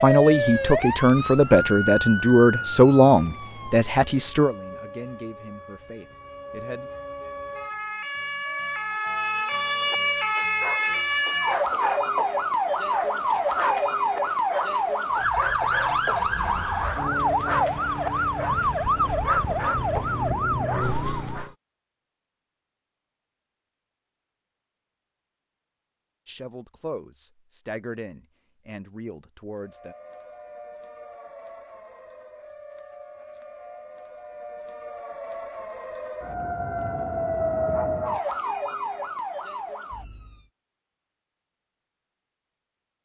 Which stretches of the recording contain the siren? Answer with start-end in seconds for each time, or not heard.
0.0-21.6, 29.6-40.5.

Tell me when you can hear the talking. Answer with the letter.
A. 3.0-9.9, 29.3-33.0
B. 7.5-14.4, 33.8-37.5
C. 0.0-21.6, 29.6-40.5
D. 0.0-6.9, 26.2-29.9
D.